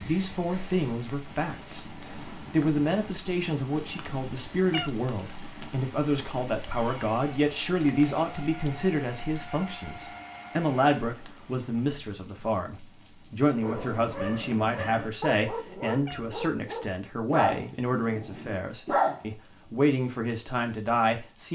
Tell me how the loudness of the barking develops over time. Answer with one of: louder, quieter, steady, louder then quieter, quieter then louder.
louder then quieter.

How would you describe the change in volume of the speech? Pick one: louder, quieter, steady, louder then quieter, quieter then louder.
steady.